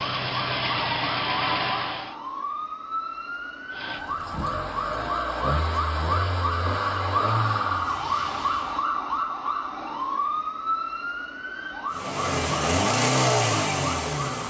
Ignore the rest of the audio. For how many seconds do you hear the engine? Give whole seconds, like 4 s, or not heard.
10 s.